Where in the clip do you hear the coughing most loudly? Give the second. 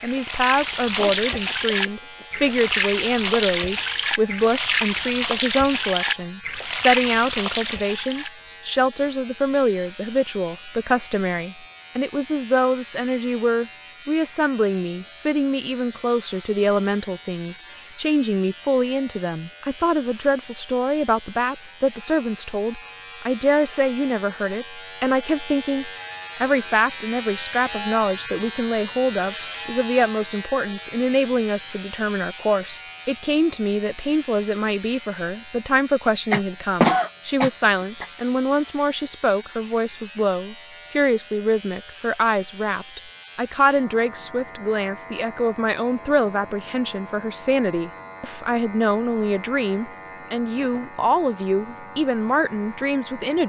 37 s.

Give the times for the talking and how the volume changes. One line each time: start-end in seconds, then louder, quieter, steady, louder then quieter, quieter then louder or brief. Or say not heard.
0.0-53.4 steady.